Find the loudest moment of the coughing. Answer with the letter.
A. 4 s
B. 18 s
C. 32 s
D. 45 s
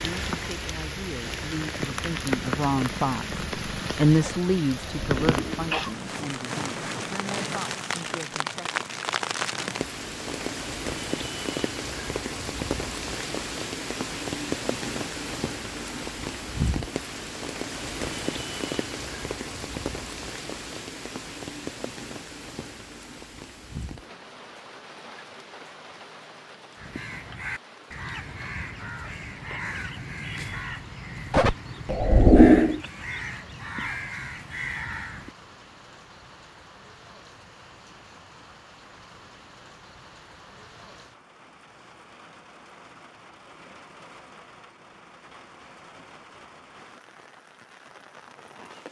C.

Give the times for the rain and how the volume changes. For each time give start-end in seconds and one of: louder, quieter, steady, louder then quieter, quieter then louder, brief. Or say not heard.
0.0-48.8 quieter.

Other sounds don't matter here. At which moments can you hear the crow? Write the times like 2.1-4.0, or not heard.
26.8-35.4.